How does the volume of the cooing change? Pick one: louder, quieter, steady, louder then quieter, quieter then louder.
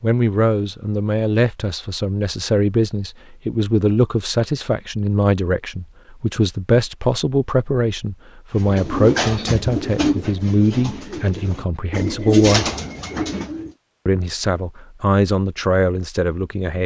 quieter then louder.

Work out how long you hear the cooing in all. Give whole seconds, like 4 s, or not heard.
5 s.